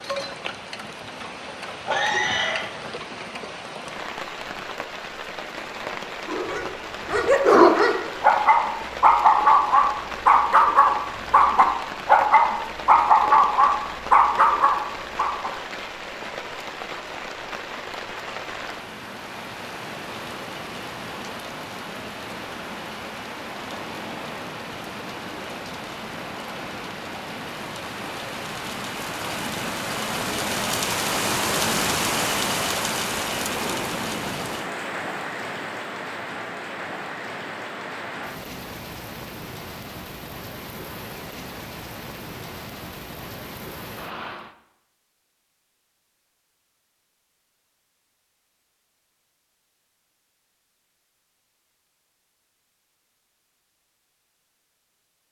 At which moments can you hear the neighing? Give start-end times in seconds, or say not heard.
1.9-2.6.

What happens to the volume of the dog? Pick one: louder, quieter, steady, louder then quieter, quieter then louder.
steady.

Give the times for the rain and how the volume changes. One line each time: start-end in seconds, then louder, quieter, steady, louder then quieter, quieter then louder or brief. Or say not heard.
0.0-44.5 louder then quieter.